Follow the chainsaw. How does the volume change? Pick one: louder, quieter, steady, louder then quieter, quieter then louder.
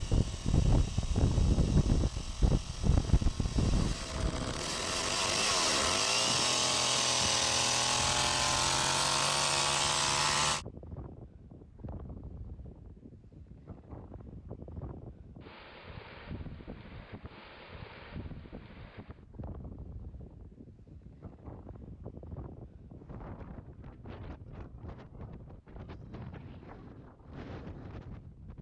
louder.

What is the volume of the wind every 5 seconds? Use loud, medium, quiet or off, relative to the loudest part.
loud, quiet, quiet, quiet, quiet, quiet.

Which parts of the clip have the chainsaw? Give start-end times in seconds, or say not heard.
0.0-10.7.